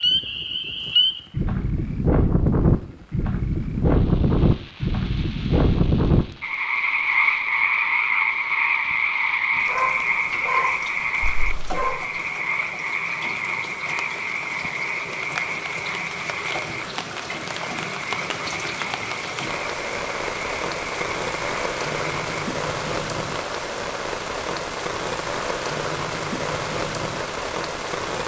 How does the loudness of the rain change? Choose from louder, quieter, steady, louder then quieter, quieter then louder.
louder.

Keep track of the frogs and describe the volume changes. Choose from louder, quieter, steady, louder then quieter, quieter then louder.
quieter.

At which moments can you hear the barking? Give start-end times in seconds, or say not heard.
9.7-12.1.